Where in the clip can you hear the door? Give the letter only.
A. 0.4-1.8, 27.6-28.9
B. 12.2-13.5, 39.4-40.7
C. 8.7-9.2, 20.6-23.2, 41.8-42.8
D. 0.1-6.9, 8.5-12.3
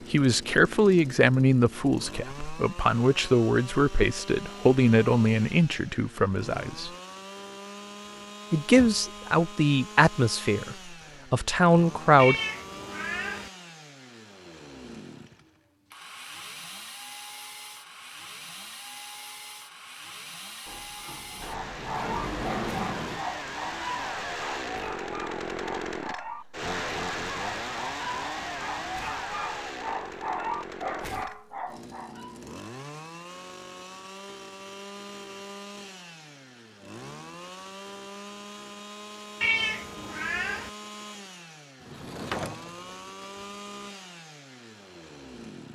C.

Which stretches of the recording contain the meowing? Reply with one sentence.
You can hear the meowing from 12.2 to 13.5 s and from 39.4 to 40.7 s.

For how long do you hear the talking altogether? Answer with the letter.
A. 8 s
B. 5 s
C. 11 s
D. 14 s
C.